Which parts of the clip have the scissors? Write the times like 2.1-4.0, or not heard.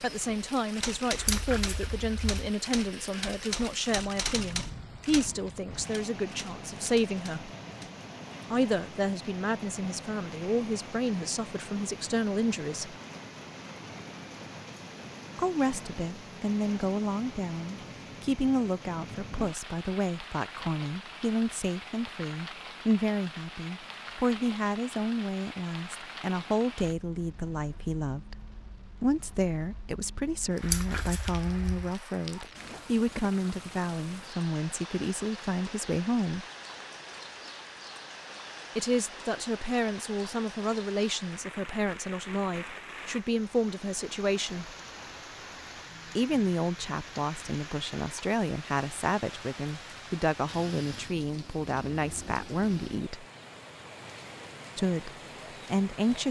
1.1-2.3, 30.6-31.9.